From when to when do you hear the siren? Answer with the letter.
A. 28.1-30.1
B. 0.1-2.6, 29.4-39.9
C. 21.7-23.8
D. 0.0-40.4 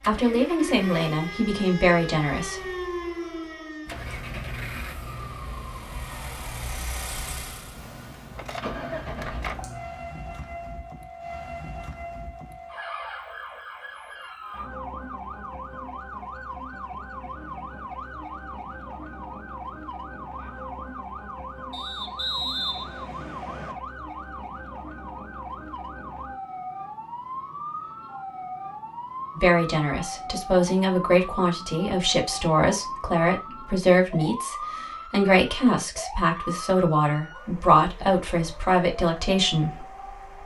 D.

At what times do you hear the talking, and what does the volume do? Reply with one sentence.
The talking can be heard briefly from 0.1 to 2.6 s; and from 29.4 to 39.9 s, at a steady volume.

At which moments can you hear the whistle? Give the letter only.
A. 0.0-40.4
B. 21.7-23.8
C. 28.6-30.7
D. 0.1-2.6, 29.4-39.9
B.